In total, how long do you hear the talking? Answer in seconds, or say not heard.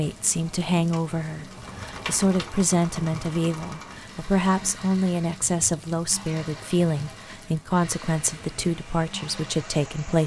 10 s.